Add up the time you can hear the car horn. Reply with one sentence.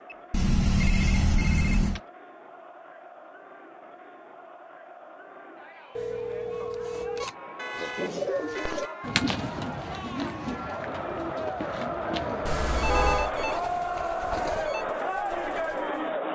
You can hear the car horn for 4 seconds altogether.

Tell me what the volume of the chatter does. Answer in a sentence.
The volume of the chatter goes up.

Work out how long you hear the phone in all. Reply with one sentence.
You can hear the phone for 5 seconds altogether.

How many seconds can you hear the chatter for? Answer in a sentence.
The chatter can be heard for 16 seconds in total.